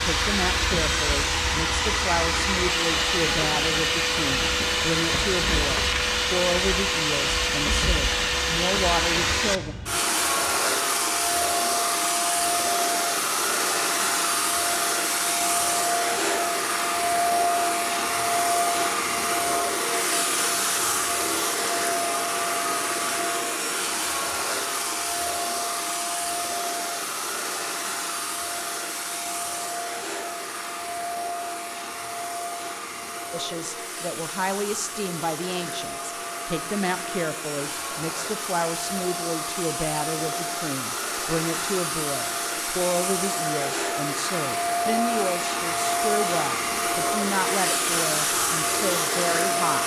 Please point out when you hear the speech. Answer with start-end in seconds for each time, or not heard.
0.0-9.8, 33.3-49.8.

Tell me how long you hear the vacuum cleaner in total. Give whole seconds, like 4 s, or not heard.
50 s.